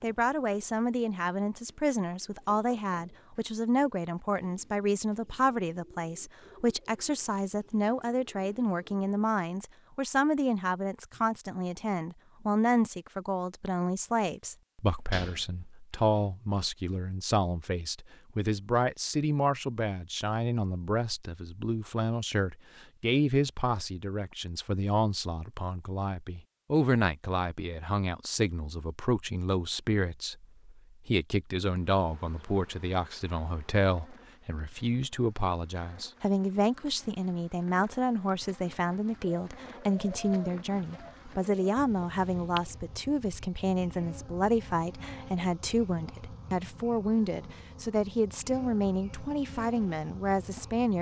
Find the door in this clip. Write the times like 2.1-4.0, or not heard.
14.9-16.2.